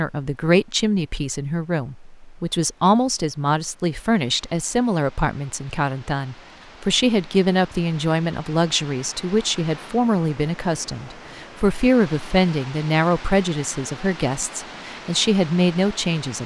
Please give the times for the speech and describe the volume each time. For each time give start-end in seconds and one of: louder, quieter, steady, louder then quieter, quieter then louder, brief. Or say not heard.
0.0-16.4 steady.